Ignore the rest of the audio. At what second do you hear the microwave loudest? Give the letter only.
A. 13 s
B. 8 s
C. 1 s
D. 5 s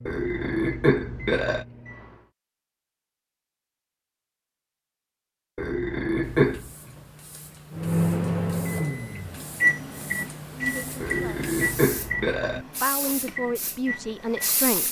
B.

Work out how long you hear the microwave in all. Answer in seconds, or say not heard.
9 s.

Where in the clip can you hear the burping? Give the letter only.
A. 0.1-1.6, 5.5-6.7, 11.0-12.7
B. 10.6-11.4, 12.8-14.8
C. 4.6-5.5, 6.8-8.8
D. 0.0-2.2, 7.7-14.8
A.